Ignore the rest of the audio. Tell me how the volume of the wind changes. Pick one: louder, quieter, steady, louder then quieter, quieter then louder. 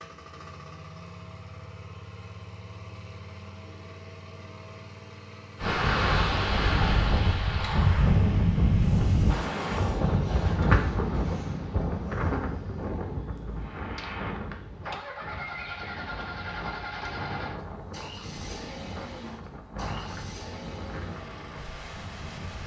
quieter.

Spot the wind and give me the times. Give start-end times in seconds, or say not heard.
5.6-22.6.